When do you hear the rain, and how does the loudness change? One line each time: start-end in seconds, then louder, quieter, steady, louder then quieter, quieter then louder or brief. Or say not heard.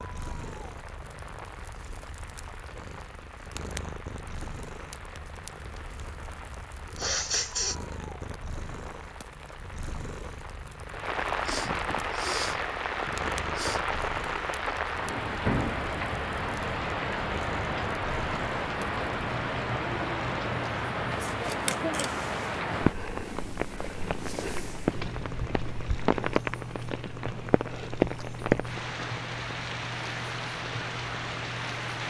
0.0-32.0 louder.